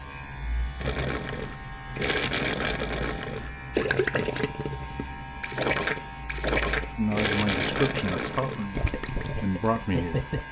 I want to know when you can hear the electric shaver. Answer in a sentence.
The electric shaver can be heard from 0.0 to 10.4 s.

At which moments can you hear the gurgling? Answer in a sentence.
You can hear the gurgling from 0.8 to 10.4 s.